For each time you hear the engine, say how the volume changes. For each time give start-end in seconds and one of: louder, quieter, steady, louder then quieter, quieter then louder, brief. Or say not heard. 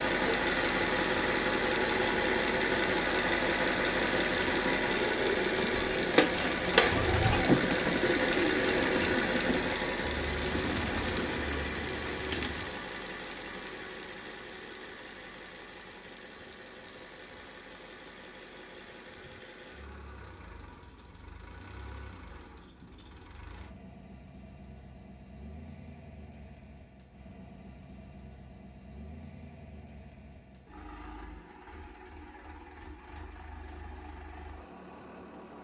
0.0-35.5 quieter.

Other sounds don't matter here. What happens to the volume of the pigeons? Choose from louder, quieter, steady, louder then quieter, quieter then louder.
louder then quieter.